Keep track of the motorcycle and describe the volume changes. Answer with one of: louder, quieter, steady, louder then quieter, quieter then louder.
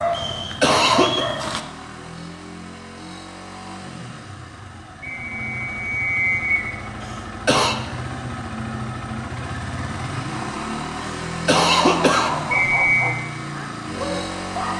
louder.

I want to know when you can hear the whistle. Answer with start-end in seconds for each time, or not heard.
0.1-1.4, 5.0-6.7, 12.5-13.2.